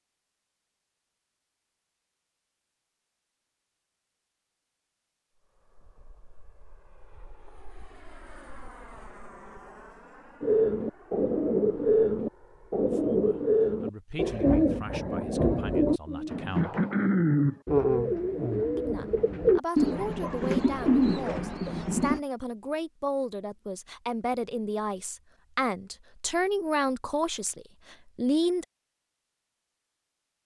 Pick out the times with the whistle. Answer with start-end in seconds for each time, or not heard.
not heard.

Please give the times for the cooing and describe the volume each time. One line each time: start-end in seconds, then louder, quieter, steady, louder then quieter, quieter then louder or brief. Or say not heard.
10.4-22.2 steady.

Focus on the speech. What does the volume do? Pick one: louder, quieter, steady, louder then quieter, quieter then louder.
louder.